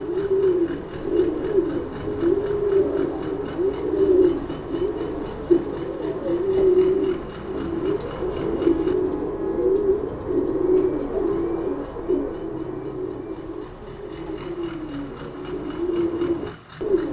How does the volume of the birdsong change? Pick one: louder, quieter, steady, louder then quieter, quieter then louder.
quieter.